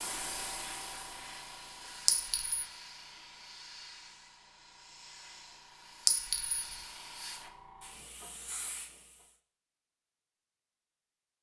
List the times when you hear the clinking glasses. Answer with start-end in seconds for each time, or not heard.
2.0-2.6, 6.0-6.8.